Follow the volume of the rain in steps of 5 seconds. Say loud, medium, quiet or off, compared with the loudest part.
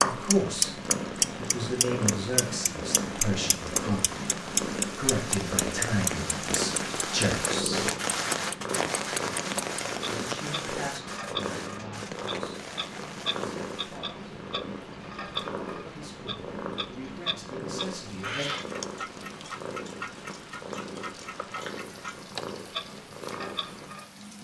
medium, loud, medium, quiet, quiet.